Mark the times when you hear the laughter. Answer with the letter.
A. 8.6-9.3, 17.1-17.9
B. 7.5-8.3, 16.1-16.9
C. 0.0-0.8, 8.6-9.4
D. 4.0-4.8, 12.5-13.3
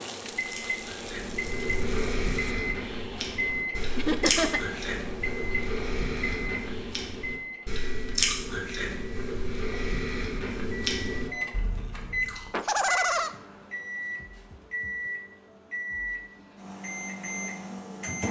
D.